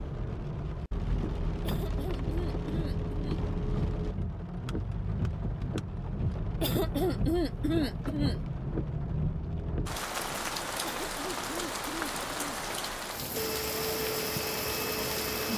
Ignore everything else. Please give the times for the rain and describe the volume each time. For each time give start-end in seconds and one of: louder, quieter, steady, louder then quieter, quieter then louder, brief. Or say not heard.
0.0-15.5 steady.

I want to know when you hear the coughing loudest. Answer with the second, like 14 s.
7 s.